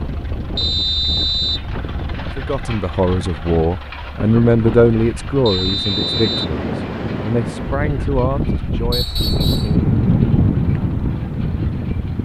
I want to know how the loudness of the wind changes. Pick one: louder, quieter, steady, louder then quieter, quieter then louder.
louder.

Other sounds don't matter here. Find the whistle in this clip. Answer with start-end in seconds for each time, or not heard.
0.6-1.6, 5.5-6.5, 8.9-9.8.